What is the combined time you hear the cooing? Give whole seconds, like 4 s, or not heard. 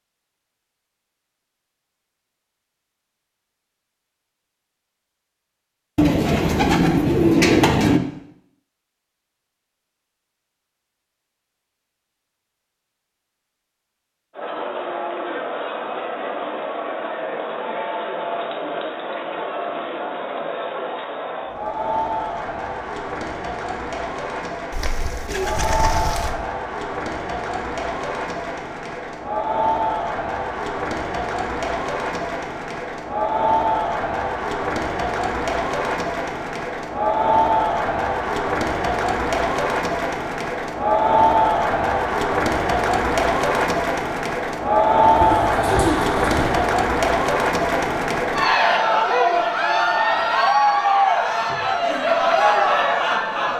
5 s.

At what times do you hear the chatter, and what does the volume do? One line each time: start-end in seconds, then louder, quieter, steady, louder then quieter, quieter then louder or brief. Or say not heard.
14.3-53.5 louder.